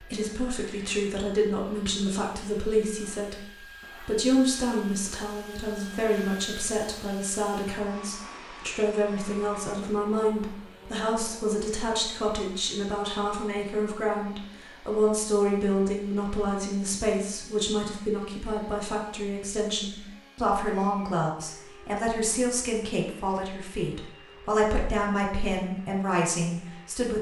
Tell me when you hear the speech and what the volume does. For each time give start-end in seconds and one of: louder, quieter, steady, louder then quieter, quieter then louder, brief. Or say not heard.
0.0-27.1 steady.